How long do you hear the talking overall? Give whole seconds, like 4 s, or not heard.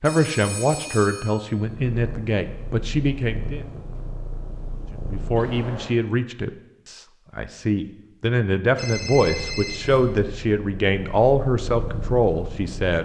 12 s.